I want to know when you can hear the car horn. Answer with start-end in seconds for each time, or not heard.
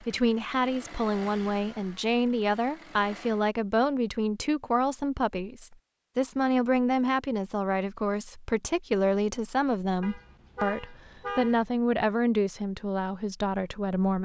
10.0-11.7.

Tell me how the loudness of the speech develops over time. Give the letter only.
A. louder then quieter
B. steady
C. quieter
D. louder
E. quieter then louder
B.